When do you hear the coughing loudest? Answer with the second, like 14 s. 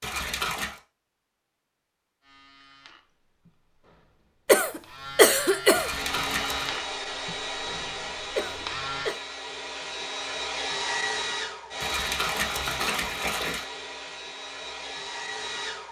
5 s.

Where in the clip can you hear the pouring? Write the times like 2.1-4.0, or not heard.
0.0-0.8, 5.7-6.8, 11.8-13.7.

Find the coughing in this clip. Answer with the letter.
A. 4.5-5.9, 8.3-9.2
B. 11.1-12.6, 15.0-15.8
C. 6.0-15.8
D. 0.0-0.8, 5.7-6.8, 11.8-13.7
A.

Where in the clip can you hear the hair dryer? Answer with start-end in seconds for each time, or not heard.
6.0-15.8.